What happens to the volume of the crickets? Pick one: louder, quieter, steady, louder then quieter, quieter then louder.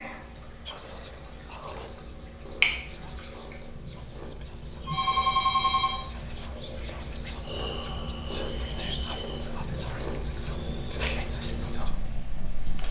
quieter.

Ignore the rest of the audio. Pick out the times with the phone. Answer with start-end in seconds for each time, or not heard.
4.8-6.0.